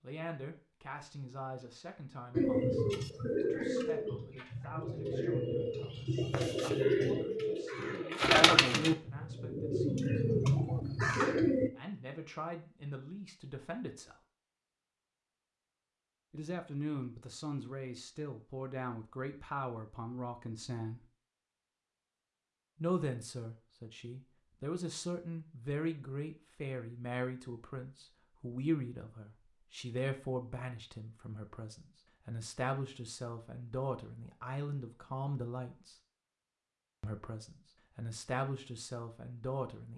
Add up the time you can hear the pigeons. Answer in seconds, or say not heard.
9 s.